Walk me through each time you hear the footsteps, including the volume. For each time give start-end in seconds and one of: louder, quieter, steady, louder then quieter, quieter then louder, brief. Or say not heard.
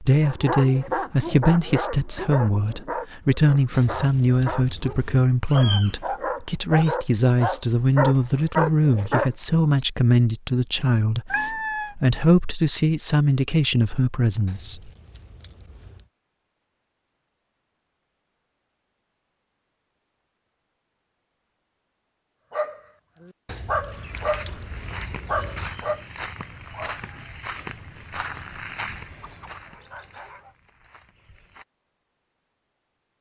23.9-31.6 quieter.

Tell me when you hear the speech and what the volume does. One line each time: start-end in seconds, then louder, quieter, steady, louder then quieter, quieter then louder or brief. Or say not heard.
0.0-14.9 steady.